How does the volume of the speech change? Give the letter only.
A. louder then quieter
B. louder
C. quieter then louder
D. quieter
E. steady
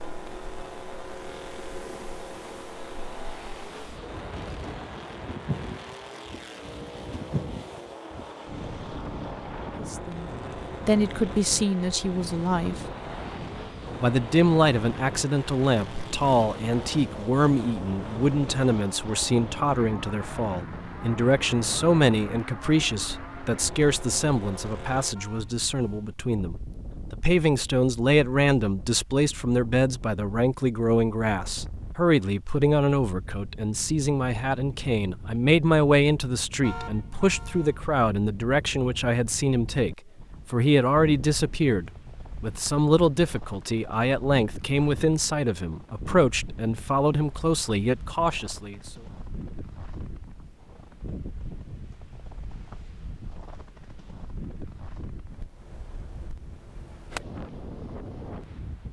E.